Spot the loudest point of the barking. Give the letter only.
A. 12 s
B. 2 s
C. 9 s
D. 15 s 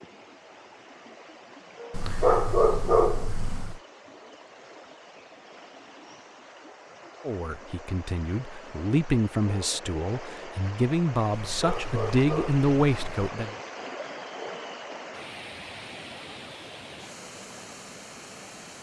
B.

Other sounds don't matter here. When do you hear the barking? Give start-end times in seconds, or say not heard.
1.9-3.8, 11.3-13.2.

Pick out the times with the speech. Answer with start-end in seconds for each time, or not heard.
7.2-13.6.